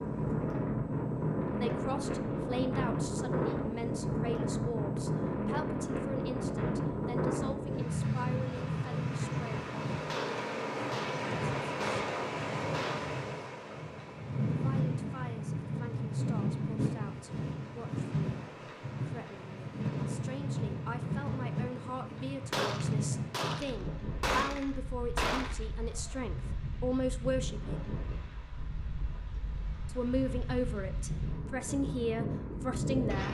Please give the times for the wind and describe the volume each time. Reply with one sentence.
The wind can be heard from 0.0 to 33.2 s, getting quieter.